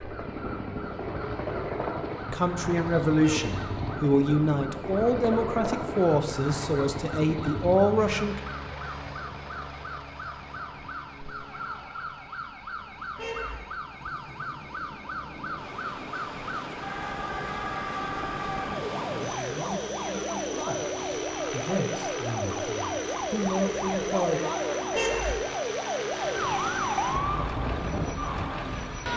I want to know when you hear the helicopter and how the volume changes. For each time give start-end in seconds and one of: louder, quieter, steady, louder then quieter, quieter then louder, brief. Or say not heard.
0.0-29.1 quieter then louder.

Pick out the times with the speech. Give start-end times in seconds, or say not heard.
2.3-8.4, 19.2-24.4.